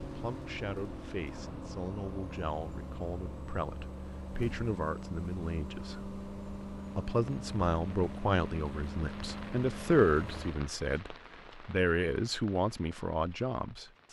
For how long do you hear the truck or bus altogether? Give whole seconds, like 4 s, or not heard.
11 s.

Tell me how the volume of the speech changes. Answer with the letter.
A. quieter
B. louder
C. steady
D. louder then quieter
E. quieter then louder
B.